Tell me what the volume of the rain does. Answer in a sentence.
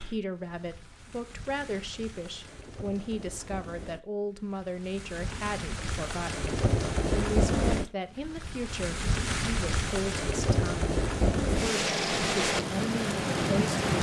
The loudness of the rain goes up.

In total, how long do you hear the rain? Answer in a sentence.
The rain can be heard for 14 seconds in total.